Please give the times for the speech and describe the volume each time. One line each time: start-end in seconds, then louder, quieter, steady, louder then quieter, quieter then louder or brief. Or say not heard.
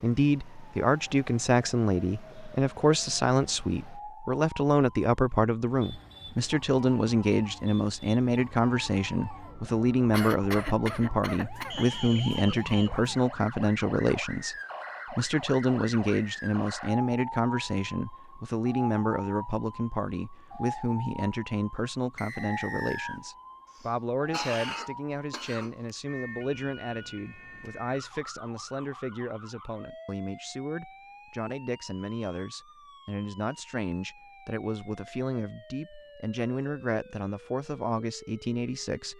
0.0-39.1 quieter.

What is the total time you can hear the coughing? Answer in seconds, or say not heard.
4 s.